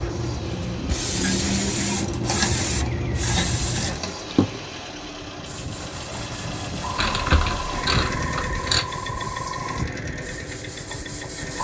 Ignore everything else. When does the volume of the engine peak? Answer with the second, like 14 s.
8 s.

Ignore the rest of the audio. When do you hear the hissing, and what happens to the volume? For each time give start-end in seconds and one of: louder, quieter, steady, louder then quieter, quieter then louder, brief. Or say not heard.
0.0-11.5 quieter then louder.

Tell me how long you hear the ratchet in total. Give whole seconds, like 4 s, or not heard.
4 s.